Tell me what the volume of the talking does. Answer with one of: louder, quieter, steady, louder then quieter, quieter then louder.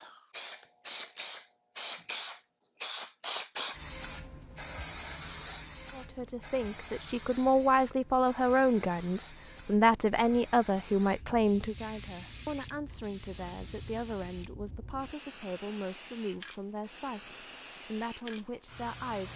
quieter.